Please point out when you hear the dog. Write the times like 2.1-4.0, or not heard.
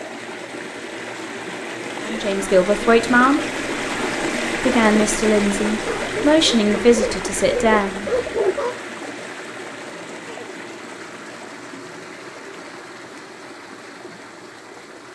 5.8-8.8.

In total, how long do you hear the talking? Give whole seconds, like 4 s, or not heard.
5 s.